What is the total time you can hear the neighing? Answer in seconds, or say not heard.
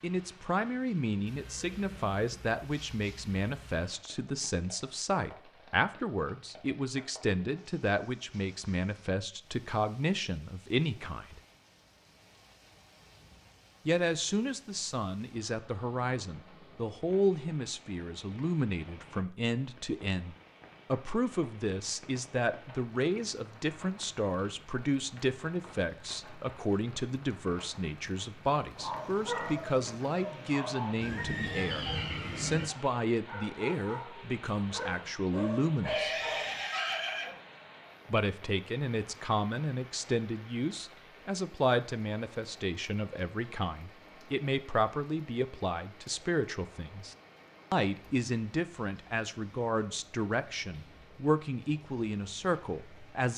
6 s.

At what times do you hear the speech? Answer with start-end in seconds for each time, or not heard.
0.0-11.4, 13.8-36.1, 38.1-53.3.